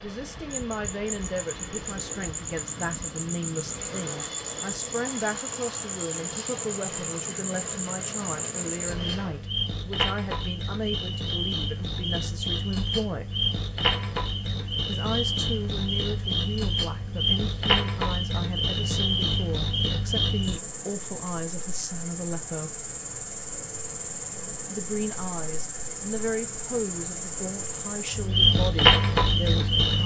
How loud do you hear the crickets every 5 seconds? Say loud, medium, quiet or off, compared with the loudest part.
medium, medium, medium, loud, medium, loud.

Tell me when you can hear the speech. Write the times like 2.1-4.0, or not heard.
0.0-13.4, 14.8-22.9, 24.7-30.0.